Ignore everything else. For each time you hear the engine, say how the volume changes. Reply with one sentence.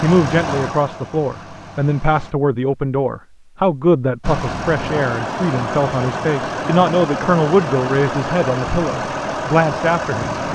You can hear the engine briefly from 0.0 to 2.4 s; and from 4.2 to 10.5 s, at a steady volume.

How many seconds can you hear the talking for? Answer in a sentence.
The talking can be heard for 10 seconds in total.